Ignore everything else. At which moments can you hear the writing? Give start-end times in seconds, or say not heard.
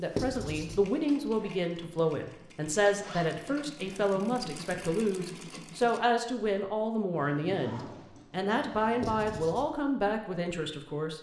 0.1-0.8, 9.0-9.7.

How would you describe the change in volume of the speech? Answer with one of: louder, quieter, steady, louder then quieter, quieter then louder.
steady.